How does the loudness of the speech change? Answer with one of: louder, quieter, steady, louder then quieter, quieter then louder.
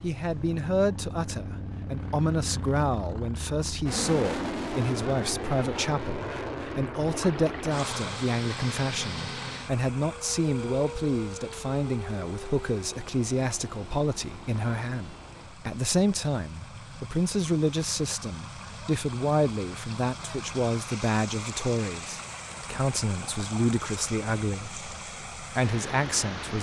steady.